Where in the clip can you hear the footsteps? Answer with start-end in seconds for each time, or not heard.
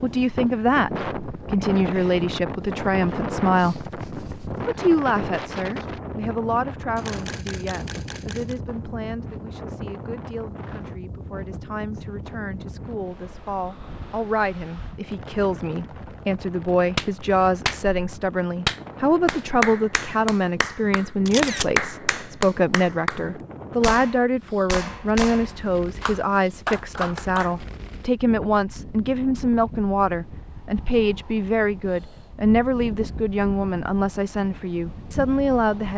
not heard.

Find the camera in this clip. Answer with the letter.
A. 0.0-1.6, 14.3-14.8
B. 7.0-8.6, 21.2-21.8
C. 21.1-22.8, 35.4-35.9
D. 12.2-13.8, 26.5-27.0
B.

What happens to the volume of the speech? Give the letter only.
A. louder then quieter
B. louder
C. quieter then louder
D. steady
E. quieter
C.